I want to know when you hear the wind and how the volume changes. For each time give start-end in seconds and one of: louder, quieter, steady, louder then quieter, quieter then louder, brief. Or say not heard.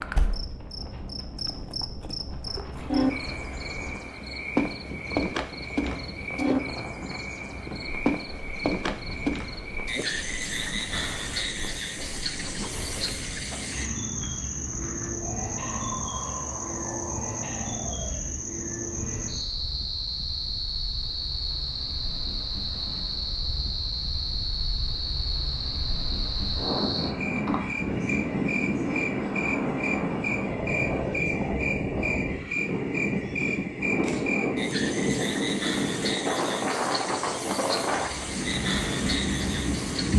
0.0-40.1 louder.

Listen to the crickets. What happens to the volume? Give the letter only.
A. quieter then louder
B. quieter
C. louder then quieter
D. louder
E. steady
E.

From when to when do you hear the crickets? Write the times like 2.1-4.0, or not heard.
0.0-40.1.